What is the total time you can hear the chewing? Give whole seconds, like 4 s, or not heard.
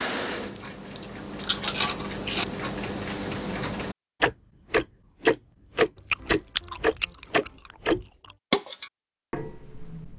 4 s.